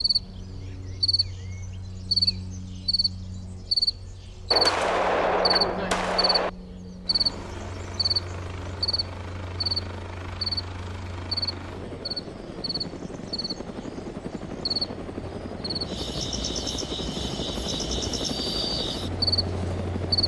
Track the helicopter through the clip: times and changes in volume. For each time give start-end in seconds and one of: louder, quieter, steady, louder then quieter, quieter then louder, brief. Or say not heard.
7.0-20.2 louder.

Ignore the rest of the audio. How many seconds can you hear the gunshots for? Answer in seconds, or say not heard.
2 s.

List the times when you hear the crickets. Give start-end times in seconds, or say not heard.
0.0-20.2.